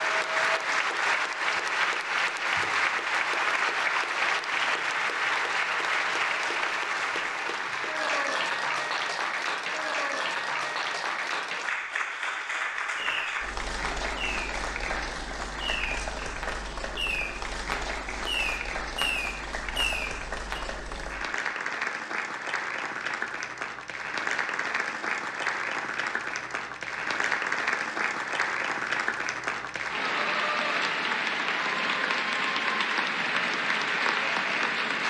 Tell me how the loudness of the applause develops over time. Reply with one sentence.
The loudness of the applause goes down, then up.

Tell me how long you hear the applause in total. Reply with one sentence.
You can hear the applause for 35 seconds altogether.